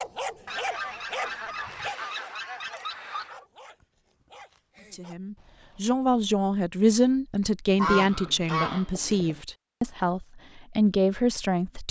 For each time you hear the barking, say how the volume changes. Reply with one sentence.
The barking can be heard from 0.0 to 5.8 s, getting quieter.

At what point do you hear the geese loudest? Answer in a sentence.
The volume of the geese peaks at 8 seconds.